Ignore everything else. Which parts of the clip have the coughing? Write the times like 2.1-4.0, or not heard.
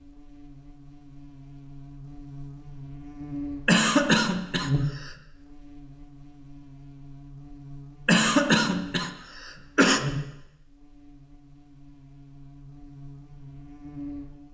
3.6-5.1, 8.1-10.0.